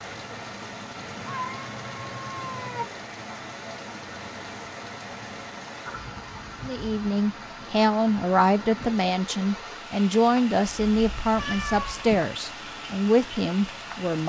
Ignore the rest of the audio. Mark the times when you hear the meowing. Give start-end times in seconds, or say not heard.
1.2-2.9, 10.9-12.3.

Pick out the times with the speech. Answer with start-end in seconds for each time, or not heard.
6.6-14.2.